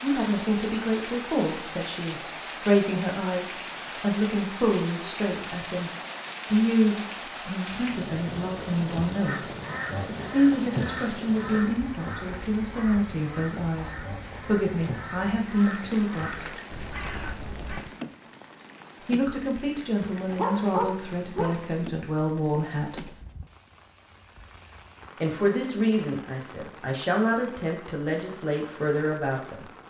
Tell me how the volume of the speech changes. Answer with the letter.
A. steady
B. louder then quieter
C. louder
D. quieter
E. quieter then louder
A.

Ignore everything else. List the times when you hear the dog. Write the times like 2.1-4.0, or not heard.
20.1-21.6.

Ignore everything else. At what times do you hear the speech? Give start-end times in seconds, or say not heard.
0.0-16.6, 19.1-23.1, 25.2-29.6.